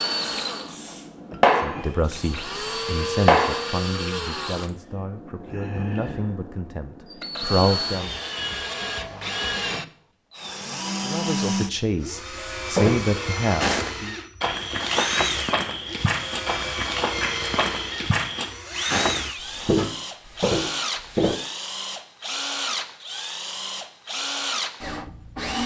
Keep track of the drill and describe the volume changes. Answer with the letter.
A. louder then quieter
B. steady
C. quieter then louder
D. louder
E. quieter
B.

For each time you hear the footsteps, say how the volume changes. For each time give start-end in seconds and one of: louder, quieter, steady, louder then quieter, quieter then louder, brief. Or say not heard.
12.6-21.4 steady.